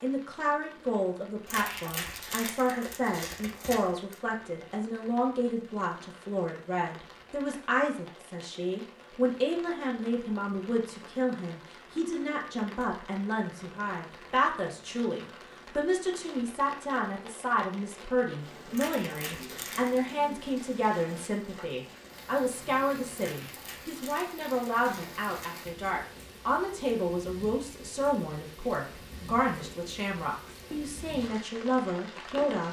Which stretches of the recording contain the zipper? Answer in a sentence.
The zipper can't be heard in this clip.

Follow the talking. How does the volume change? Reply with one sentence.
The volume of the talking stays about the same.